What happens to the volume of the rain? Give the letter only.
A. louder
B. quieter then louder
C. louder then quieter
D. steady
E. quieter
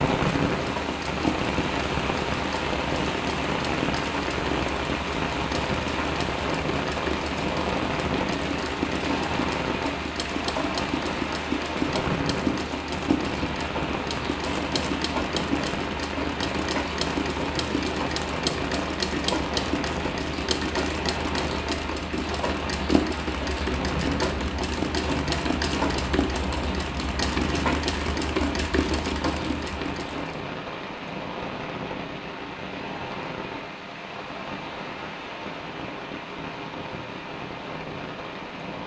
E.